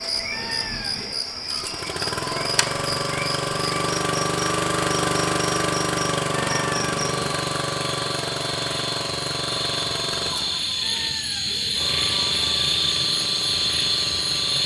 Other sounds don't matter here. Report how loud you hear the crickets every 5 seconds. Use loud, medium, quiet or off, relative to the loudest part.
medium, medium, loud.